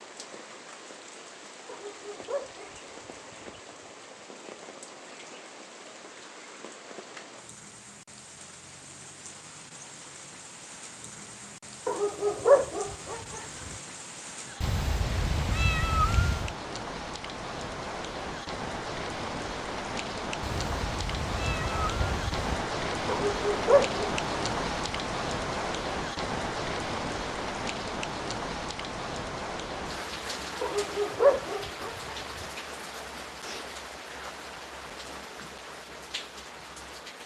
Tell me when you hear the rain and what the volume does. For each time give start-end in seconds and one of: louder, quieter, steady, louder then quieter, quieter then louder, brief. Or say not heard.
0.0-37.2 louder then quieter.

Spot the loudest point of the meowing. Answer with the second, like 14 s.
16 s.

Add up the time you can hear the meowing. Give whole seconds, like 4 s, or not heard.
4 s.